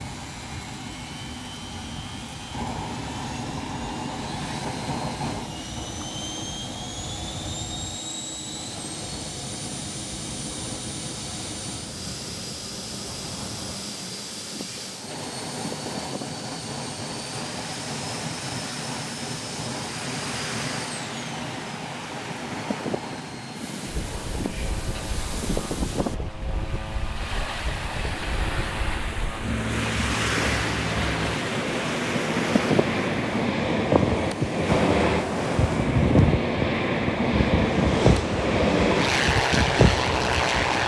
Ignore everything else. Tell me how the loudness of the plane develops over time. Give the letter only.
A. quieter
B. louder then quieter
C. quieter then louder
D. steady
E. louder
E.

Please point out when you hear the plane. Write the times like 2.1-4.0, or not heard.
0.0-40.8.